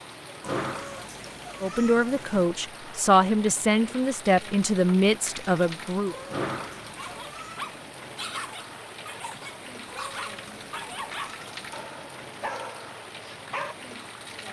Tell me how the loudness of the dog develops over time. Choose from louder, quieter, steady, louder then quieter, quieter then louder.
quieter then louder.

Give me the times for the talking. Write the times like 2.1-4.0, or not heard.
1.6-6.2.